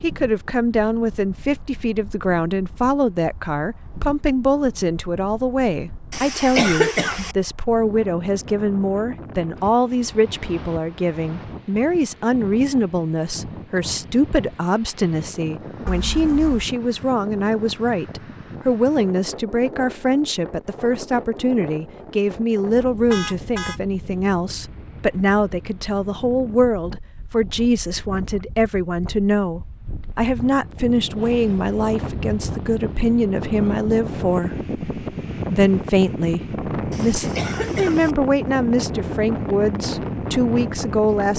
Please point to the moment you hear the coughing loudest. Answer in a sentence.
The volume of the coughing peaks at 7 seconds.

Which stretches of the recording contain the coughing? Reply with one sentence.
The coughing can be heard from 6.1 to 7.3 s and from 36.9 to 38.1 s.